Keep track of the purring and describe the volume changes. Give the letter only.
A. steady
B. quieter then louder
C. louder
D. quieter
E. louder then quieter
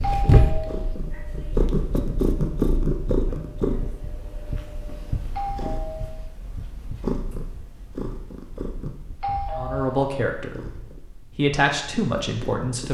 D.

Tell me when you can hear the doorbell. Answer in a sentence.
You can hear the doorbell from 0.0 to 0.9 s, from 5.3 to 6.2 s and from 9.2 to 10.1 s.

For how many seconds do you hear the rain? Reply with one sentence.
The rain can't be heard in this clip.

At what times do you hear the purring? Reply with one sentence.
The purring can be heard from 0.0 to 12.8 s.